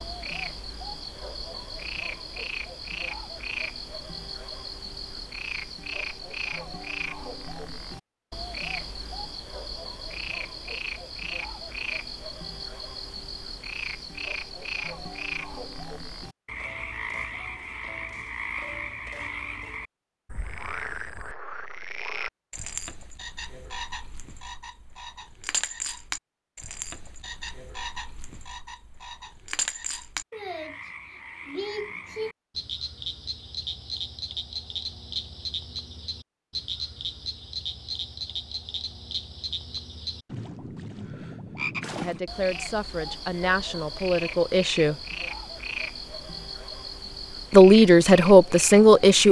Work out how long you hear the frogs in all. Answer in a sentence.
The frogs can be heard for 49 seconds in total.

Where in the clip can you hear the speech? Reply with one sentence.
The speech can be heard from 42.0 to 45.0 s and from 47.5 to 49.2 s.